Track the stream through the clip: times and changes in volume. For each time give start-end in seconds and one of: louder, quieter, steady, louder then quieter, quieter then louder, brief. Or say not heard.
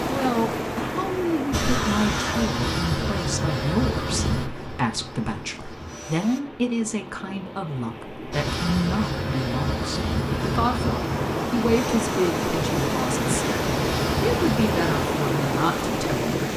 0.0-16.5 quieter then louder.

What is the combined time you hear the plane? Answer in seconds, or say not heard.
12 s.